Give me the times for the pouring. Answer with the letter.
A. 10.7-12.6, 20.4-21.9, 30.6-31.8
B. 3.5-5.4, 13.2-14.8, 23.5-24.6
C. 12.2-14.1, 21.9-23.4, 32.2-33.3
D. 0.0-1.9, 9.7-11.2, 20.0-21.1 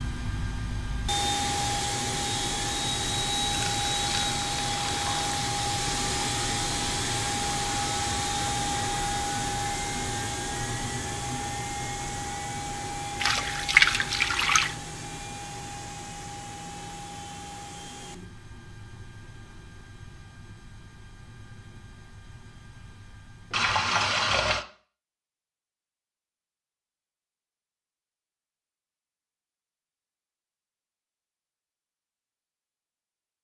B.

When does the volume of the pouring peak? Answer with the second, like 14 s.
14 s.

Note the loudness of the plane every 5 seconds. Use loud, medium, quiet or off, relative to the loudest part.
loud, loud, medium, quiet, quiet, off, off.